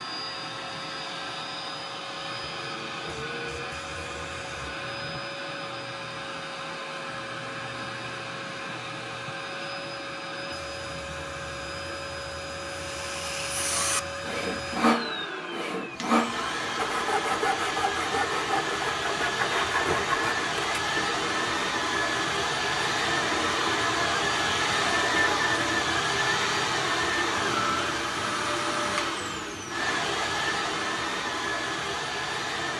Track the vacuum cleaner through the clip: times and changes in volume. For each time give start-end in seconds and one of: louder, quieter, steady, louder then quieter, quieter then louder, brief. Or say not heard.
0.0-32.7 louder.